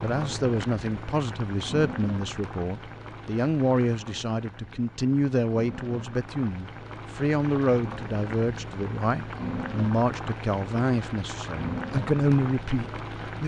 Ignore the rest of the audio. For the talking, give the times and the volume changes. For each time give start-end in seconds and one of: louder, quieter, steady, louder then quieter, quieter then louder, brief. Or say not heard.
0.0-13.4 steady.